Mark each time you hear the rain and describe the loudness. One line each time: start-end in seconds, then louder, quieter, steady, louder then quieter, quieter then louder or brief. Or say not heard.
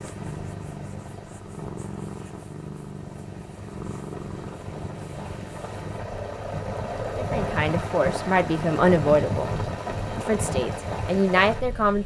0.0-12.0 louder.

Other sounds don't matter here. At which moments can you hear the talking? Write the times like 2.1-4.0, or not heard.
7.2-9.6, 10.2-12.0.